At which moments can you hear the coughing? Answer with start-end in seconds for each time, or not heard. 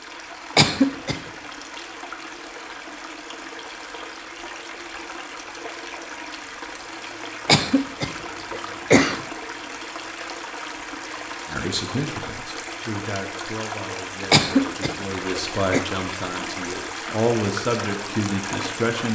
0.6-1.2, 7.5-9.2, 14.3-15.8.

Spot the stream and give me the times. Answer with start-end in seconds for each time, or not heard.
0.0-19.1.